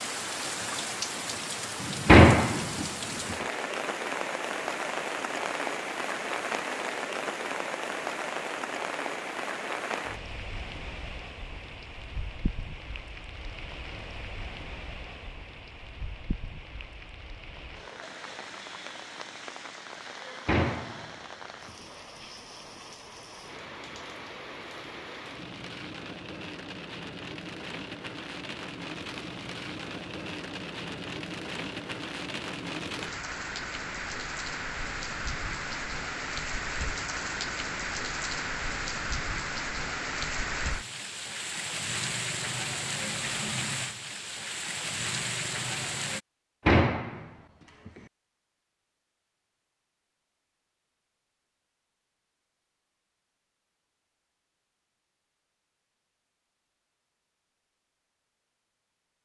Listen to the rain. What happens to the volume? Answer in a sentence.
The loudness of the rain goes down, then up.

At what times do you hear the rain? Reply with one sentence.
You can hear the rain from 0.0 to 46.2 s.